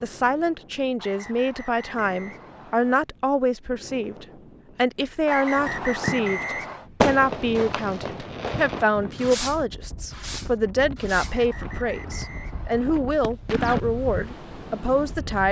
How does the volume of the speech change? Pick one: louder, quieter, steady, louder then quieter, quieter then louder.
steady.